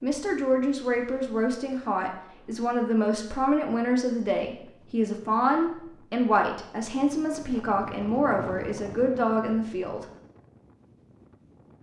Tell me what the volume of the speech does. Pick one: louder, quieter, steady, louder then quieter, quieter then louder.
steady.